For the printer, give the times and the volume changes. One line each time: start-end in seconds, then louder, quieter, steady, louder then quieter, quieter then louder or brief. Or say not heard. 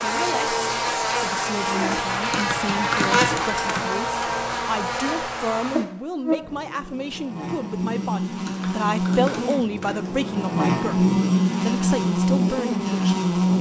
not heard.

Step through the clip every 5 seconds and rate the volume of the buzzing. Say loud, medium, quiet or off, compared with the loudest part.
loud, medium, loud.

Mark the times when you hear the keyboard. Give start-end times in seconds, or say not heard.
2.2-4.0, 8.3-10.1.